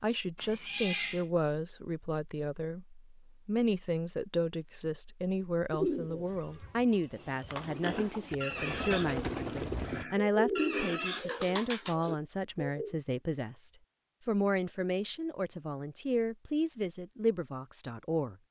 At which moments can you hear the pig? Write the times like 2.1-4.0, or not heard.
7.2-11.4.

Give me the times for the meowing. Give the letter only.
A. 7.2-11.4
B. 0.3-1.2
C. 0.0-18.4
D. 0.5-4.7
B.